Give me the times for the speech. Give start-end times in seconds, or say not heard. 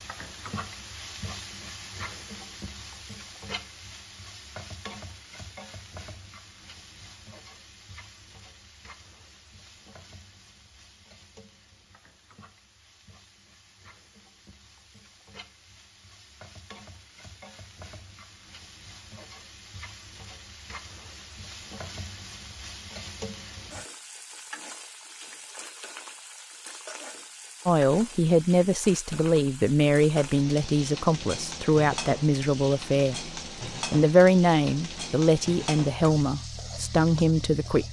27.6-37.8.